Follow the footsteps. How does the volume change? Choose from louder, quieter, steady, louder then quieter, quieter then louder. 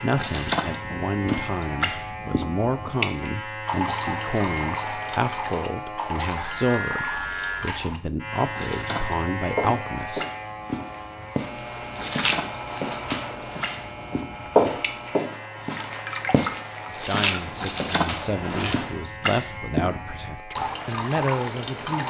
louder then quieter.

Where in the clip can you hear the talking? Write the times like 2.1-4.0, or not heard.
0.0-10.2, 16.9-22.0.